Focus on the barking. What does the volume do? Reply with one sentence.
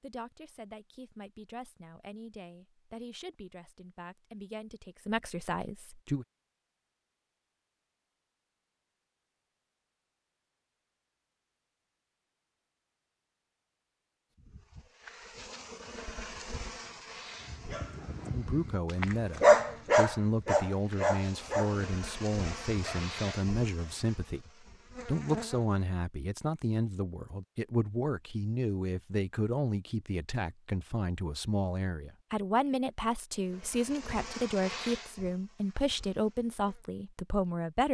The volume of the barking goes up, then down.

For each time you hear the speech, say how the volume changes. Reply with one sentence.
The speech can be heard from 0.0 to 6.2 s, getting louder; and from 18.3 to 37.9 s, at a steady volume.